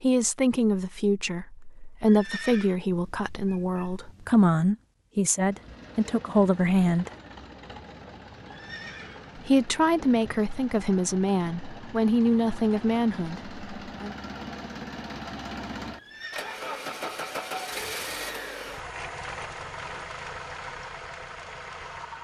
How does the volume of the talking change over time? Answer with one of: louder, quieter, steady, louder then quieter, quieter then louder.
steady.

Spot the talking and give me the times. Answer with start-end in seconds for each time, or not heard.
0.0-7.1, 9.3-14.2.